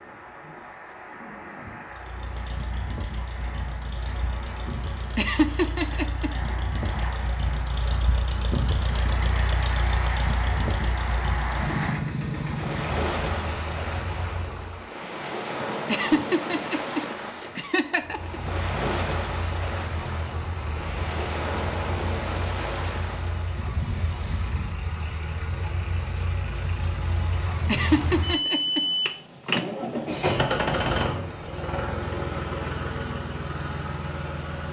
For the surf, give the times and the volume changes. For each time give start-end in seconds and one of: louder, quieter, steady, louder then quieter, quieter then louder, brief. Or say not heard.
0.0-24.8 louder.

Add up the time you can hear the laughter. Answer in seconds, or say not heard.
5 s.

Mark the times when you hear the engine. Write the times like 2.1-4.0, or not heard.
1.9-14.8, 18.0-34.6.